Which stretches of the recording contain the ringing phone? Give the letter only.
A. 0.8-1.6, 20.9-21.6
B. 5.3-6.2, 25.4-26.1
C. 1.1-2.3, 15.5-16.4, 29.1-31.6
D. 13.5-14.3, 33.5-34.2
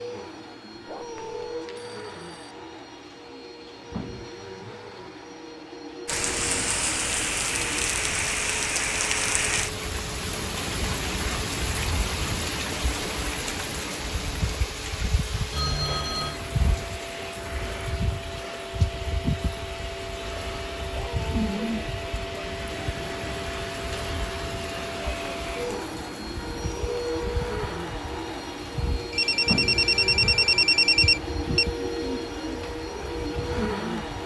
C.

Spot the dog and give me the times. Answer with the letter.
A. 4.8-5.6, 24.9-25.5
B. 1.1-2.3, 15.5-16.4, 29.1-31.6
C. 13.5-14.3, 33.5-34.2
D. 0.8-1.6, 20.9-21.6
D.